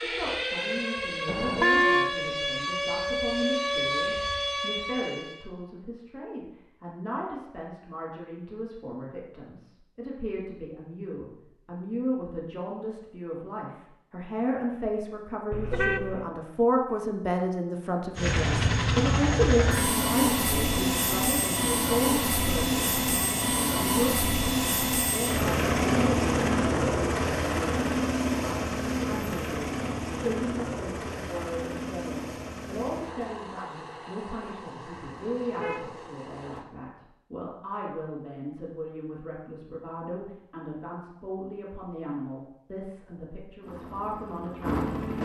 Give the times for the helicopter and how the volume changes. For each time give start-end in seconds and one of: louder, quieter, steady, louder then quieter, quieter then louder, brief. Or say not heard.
18.1-36.6 quieter
43.6-45.2 brief.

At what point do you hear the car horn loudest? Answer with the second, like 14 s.
2 s.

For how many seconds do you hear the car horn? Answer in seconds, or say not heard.
3 s.